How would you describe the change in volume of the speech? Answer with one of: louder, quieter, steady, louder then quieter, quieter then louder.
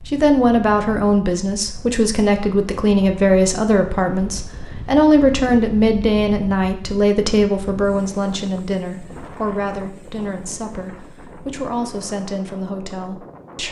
quieter.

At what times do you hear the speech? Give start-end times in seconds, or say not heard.
0.1-13.6.